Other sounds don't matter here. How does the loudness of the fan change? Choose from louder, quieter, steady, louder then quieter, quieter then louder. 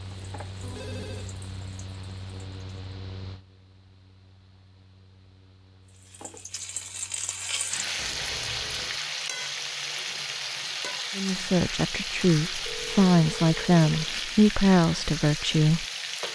quieter.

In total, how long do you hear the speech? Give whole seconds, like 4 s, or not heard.
5 s.